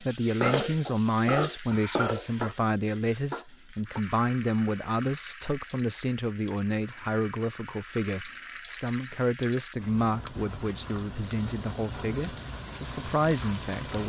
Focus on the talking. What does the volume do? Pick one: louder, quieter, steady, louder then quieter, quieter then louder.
steady.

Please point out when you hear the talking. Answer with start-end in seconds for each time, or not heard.
0.0-14.0.